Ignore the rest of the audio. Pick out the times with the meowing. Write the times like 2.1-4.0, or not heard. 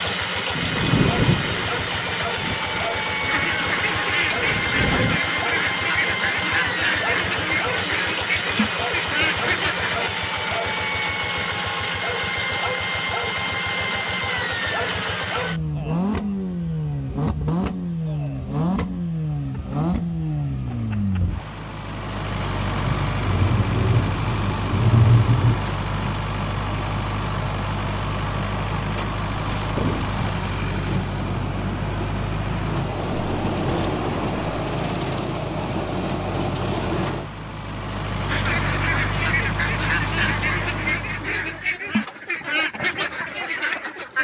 29.3-30.2.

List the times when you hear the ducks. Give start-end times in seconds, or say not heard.
3.2-10.1, 38.2-44.1.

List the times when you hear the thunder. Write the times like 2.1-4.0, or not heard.
0.6-5.2, 22.9-25.6, 33.1-34.5.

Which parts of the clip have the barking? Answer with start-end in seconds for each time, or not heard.
not heard.